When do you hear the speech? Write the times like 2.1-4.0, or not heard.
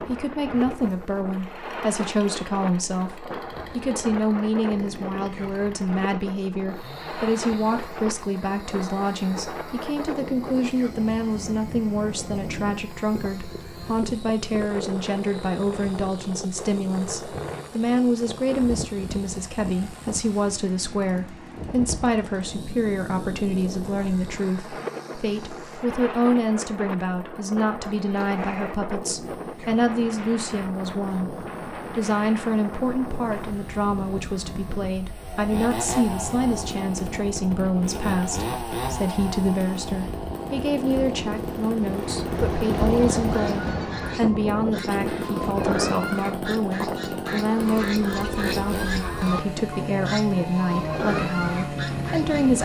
0.0-52.6.